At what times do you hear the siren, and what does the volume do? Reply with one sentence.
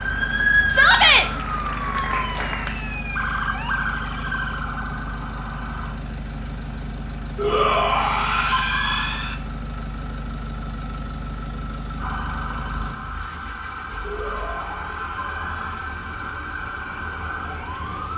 The siren can be heard from 0.0 to 6.0 s, getting quieter; and from 11.9 to 18.1 s, at a steady volume.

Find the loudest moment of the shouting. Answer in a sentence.
The volume of the shouting peaks at 1 second.